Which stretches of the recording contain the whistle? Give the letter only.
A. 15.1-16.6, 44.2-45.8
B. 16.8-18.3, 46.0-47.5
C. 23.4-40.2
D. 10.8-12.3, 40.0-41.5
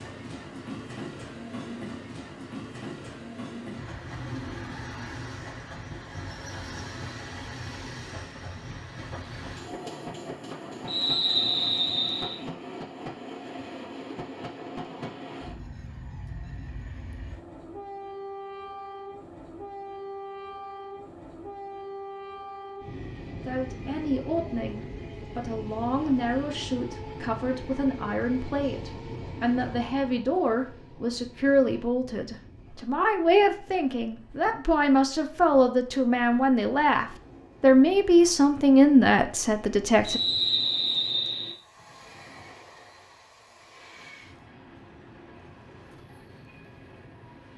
D.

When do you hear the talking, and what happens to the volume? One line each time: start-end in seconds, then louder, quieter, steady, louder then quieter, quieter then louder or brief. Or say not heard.
23.4-40.2 louder.